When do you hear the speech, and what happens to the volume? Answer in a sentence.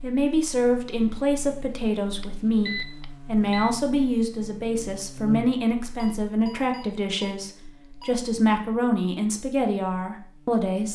The speech can be heard from 0.0 to 10.9 s, at a steady volume.